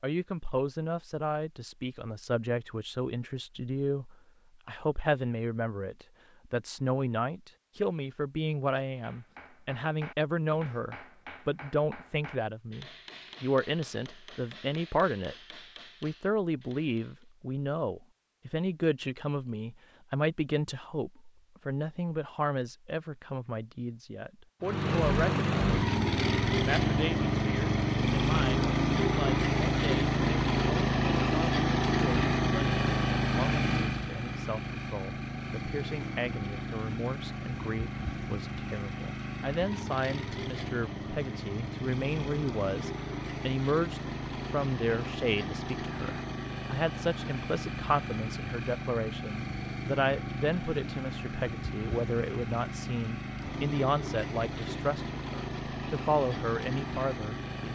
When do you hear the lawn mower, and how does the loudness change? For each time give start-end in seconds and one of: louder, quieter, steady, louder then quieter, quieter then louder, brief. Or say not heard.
24.6-57.6 quieter.